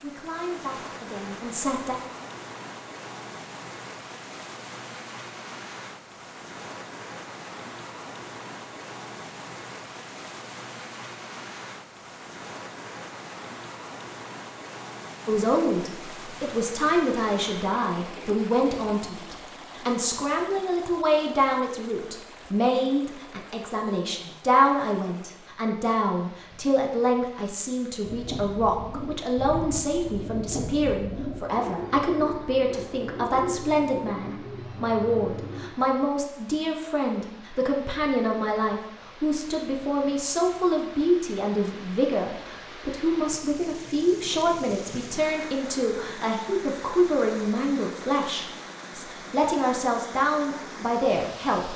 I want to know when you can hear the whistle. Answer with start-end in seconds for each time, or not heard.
not heard.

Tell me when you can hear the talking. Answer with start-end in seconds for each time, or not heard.
0.0-1.9, 15.2-51.7.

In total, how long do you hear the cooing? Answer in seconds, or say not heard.
8 s.